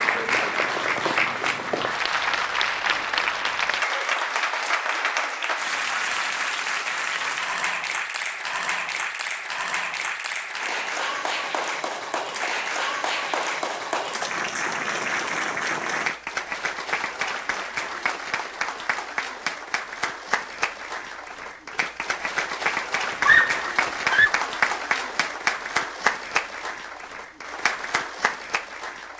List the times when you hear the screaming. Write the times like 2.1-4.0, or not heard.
23.1-24.3.